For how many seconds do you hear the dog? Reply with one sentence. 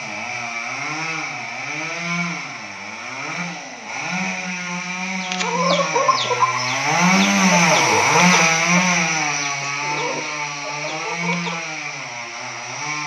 You can't hear the dog here.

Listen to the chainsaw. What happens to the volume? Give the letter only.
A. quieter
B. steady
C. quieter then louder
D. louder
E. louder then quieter
E.